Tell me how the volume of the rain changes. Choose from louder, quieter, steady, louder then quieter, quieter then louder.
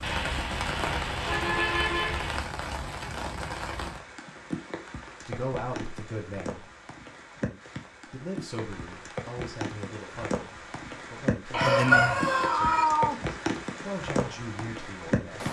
quieter then louder.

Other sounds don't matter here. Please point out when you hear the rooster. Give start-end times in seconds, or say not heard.
11.6-12.8.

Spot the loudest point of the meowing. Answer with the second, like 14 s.
13 s.